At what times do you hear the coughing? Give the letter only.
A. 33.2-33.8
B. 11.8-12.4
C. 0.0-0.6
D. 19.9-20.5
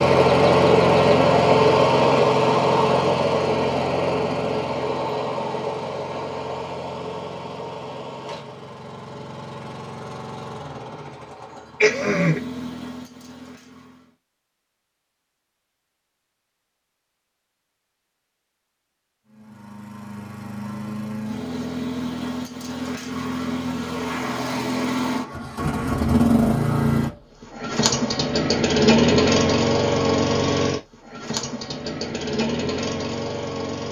B.